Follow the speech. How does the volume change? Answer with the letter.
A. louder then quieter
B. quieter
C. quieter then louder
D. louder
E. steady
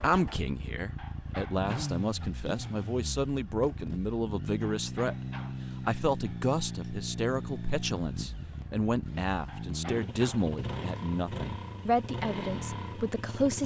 E.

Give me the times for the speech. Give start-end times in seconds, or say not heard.
0.0-5.2, 5.8-13.6.